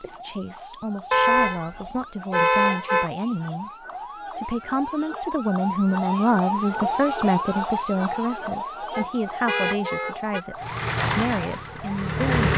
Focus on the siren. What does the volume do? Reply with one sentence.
The volume of the siren goes up, then down.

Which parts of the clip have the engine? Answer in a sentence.
The engine can be heard from 10.6 to 12.5 s.